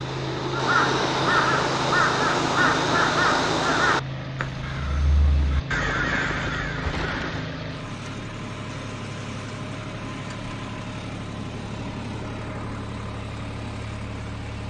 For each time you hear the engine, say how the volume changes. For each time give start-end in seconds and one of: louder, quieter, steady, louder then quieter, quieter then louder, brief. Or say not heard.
0.0-14.6 steady.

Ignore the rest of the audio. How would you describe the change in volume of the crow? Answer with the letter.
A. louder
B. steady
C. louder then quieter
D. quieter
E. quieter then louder
E.